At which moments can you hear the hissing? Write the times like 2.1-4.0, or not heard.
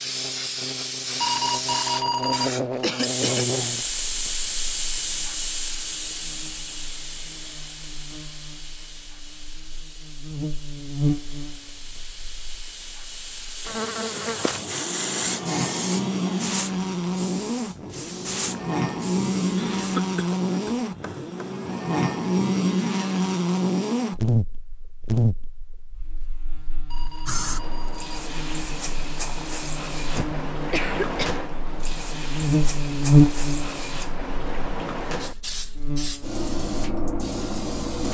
0.0-20.0, 27.2-38.0.